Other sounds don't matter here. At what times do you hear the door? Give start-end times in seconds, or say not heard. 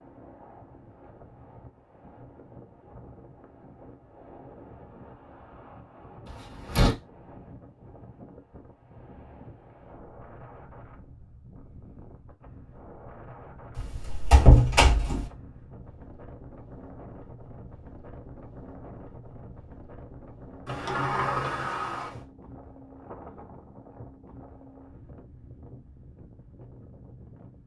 6.2-7.0, 13.8-15.2, 20.6-22.1.